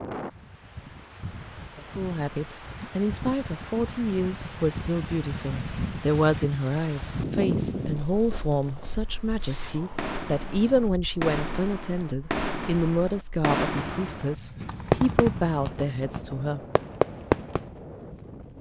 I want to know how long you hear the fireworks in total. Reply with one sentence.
The fireworks can be heard for 10 seconds in total.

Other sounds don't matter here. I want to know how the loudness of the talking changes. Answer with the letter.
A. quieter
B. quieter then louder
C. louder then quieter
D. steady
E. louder
D.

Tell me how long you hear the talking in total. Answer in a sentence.
The talking can be heard for 15 seconds in total.